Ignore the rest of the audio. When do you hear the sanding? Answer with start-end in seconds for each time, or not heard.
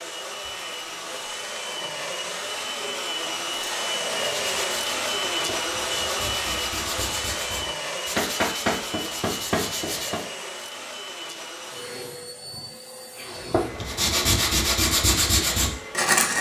4.3-10.2, 13.3-16.3.